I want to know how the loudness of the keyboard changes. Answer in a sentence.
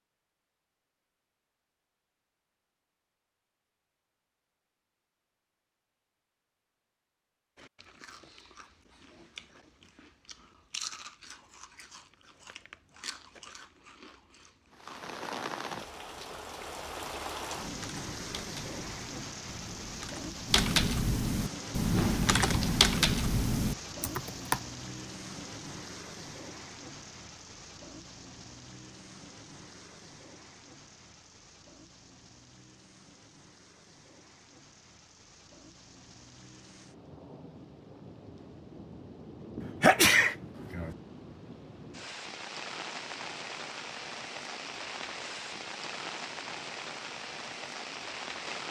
The loudness of the keyboard goes up.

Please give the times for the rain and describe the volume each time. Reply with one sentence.
You can hear the rain from 14.7 to 48.6 s, getting quieter then louder.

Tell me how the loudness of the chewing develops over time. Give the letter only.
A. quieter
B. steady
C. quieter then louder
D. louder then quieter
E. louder
D.